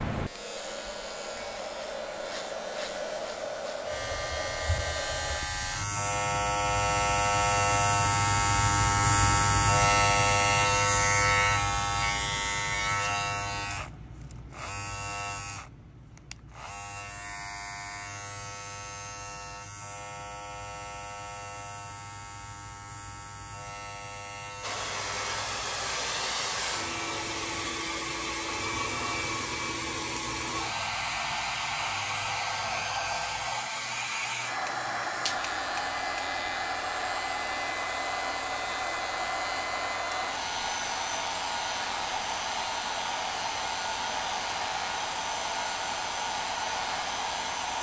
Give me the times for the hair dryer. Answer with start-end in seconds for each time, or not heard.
0.1-5.5, 24.6-47.7.